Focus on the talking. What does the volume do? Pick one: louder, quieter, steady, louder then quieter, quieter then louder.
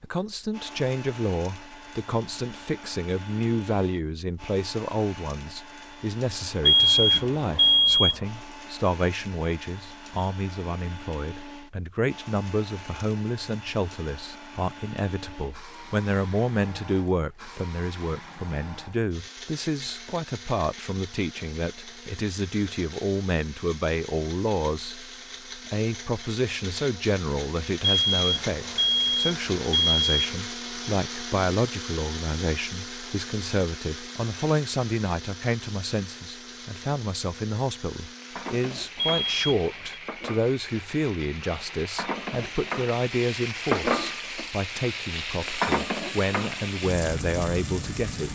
steady.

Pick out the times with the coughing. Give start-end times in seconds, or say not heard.
not heard.